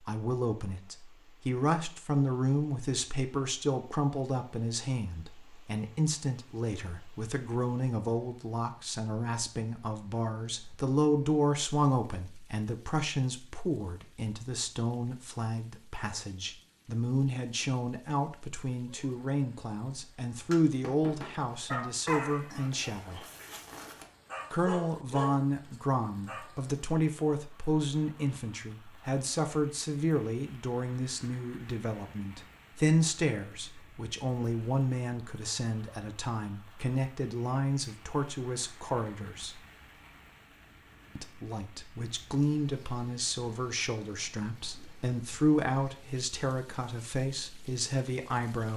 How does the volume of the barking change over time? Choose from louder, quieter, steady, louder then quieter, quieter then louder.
quieter then louder.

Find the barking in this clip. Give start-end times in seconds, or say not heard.
20.5-26.5.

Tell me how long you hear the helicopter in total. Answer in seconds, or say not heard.
not heard.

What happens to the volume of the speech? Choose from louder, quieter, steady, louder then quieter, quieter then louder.
steady.